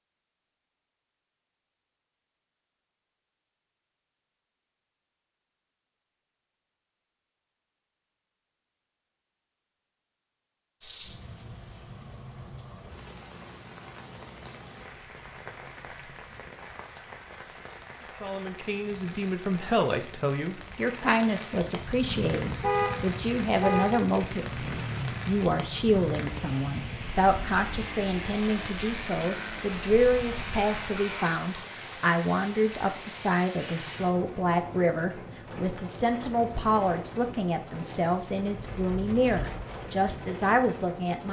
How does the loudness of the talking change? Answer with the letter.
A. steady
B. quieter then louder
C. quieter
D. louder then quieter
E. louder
A.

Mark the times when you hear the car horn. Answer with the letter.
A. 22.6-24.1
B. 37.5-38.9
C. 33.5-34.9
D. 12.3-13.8
A.